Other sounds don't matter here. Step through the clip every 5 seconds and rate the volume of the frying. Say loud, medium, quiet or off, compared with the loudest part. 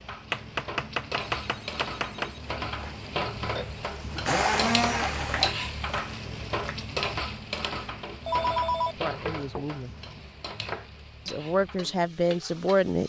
loud, loud, medium.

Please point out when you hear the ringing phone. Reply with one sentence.
The ringing phone can be heard from 1.2 to 3.8 s and from 8.2 to 8.9 s.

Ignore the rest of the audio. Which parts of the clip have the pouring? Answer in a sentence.
The pouring can't be heard in this clip.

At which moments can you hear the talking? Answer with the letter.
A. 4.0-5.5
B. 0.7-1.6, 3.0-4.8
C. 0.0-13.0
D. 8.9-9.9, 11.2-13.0
D.